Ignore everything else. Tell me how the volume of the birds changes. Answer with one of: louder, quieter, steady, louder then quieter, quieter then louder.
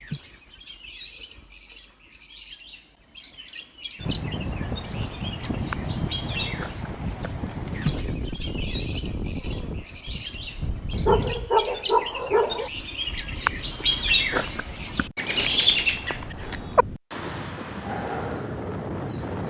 louder.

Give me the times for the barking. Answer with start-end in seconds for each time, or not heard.
11.1-12.7.